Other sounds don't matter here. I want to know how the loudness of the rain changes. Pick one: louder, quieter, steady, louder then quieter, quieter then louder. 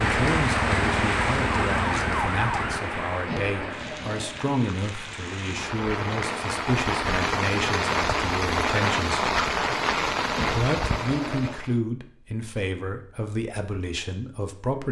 quieter then louder.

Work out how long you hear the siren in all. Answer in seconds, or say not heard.
3 s.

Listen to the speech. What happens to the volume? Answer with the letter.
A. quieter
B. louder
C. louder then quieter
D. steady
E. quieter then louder
D.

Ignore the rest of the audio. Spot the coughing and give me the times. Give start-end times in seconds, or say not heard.
3.2-4.4, 10.3-11.6.